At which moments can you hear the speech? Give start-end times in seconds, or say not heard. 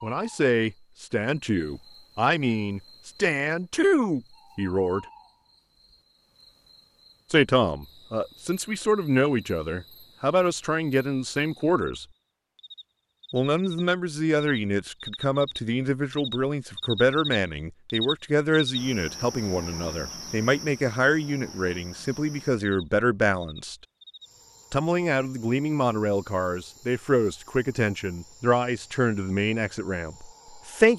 0.0-5.0, 7.3-12.1, 13.3-23.8, 24.7-30.9.